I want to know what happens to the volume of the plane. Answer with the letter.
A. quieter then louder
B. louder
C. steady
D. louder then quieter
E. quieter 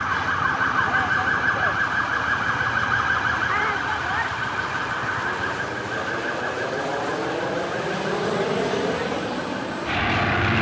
B.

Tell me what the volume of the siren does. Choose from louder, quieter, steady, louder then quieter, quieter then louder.
quieter.